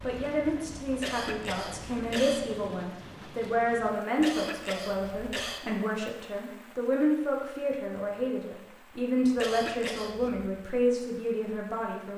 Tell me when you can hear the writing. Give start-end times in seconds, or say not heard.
not heard.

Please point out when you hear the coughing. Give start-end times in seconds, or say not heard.
0.9-2.4, 4.2-5.6, 9.3-10.5.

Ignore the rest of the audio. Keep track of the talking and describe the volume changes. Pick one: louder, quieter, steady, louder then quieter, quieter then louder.
steady.